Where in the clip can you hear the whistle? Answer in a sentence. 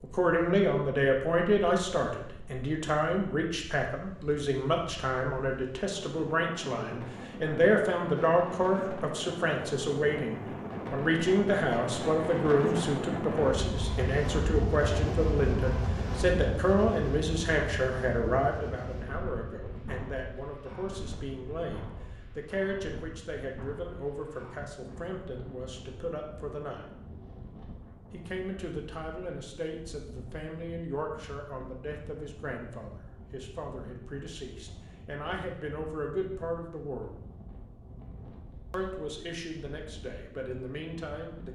You can't hear the whistle here.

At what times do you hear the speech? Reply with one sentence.
You can hear the speech from 0.0 to 26.9 s, from 28.1 to 37.1 s and from 38.7 to 41.4 s.